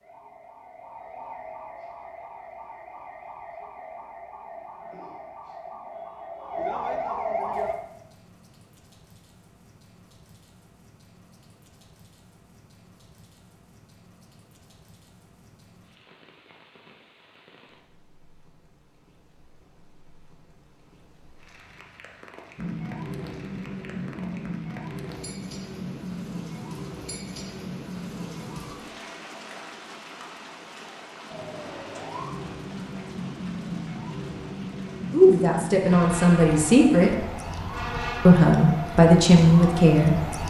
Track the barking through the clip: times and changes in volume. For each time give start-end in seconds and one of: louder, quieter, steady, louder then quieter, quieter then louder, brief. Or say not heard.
not heard.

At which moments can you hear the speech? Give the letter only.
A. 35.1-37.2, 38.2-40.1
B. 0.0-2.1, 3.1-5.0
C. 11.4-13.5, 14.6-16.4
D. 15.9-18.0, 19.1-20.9
A.